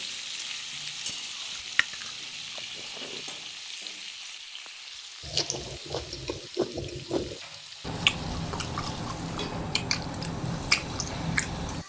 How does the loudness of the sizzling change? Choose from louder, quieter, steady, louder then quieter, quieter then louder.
quieter.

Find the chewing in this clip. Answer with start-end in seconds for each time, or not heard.
0.0-3.2, 5.2-11.8.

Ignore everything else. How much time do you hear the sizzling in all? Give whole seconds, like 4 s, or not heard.
12 s.